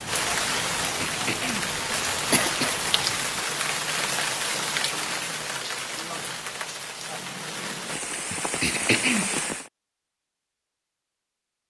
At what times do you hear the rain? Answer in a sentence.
The rain can be heard from 0.0 to 9.7 s.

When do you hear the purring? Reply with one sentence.
The purring can't be heard in this clip.